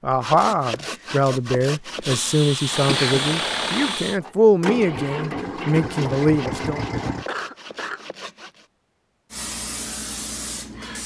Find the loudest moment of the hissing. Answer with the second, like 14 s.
3 s.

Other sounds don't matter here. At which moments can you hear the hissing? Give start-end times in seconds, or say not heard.
2.0-4.2, 9.3-11.0.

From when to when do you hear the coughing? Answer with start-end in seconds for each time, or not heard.
2.9-3.3, 7.2-8.1.